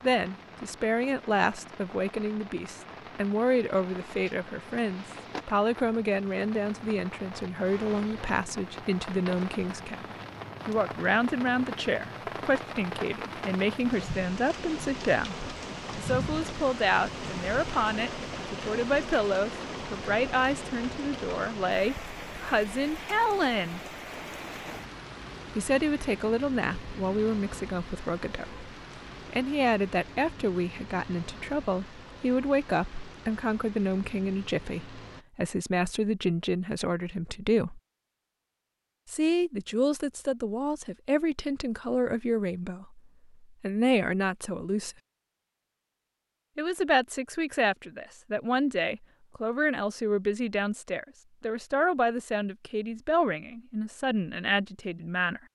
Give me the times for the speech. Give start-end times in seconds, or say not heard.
0.0-15.3, 15.9-23.8, 25.6-37.8, 39.0-45.0, 46.5-55.4.